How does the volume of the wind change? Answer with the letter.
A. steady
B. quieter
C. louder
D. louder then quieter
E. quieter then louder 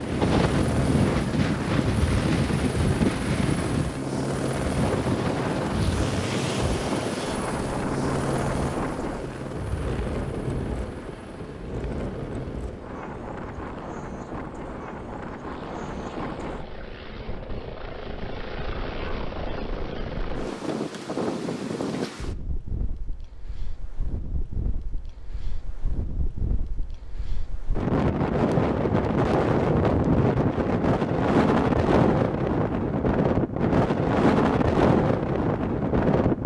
E.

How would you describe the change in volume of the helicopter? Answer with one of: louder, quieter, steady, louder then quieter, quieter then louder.
quieter then louder.